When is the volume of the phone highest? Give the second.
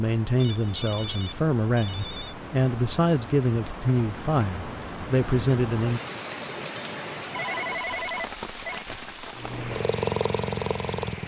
8 s.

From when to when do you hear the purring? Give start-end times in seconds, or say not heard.
9.3-11.2.